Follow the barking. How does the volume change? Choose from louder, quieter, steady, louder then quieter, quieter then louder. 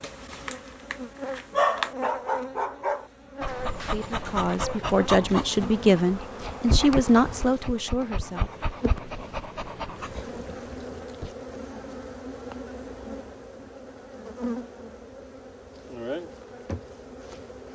quieter.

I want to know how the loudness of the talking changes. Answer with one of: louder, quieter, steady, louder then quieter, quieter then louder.
louder then quieter.